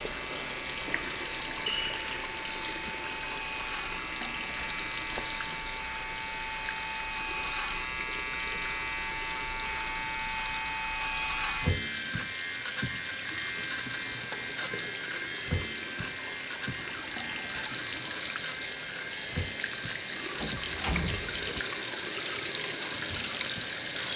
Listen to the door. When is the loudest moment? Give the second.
21 s.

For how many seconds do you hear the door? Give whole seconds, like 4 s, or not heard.
2 s.